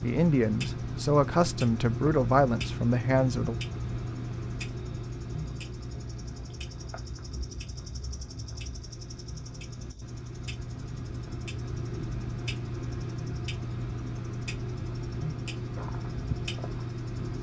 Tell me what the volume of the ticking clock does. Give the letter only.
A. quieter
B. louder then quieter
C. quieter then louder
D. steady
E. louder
C.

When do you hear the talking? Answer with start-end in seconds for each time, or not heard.
0.0-3.5.